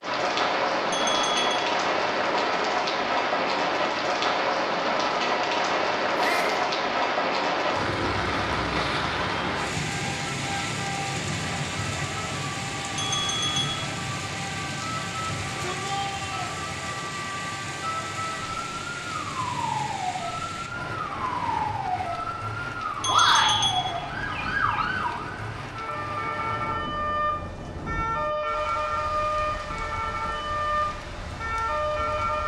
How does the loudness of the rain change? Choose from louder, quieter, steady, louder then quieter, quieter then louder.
quieter.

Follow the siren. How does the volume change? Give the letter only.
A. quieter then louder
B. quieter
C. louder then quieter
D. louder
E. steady
D.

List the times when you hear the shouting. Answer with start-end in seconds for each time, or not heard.
6.2-6.6, 15.2-16.6, 23.1-23.6.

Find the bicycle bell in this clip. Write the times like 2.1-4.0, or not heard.
0.9-1.6, 12.9-13.7, 23.0-23.9.